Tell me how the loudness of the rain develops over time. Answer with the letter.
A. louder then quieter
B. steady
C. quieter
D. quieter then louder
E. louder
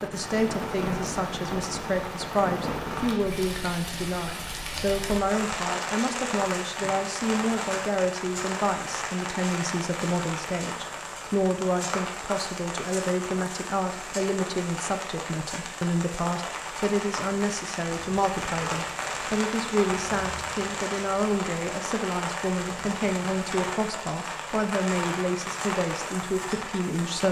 B.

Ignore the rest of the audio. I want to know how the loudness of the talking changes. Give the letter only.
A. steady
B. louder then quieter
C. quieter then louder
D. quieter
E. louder
A.